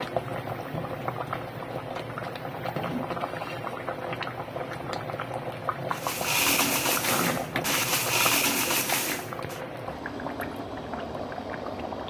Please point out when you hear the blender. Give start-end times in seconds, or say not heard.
5.9-9.6.